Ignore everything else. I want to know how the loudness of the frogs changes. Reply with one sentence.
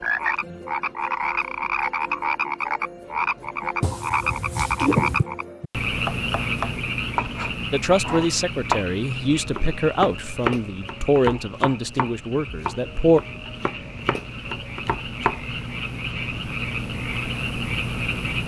The loudness of the frogs goes down, then up.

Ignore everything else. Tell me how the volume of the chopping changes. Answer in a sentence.
The volume of the chopping goes down.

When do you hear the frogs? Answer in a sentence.
The frogs can be heard from 0.0 to 18.4 s.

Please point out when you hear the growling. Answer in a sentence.
The growling can be heard from 3.8 to 5.2 s.